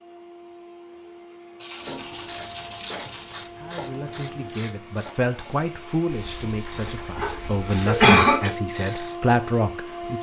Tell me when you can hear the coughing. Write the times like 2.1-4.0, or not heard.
7.2-8.5.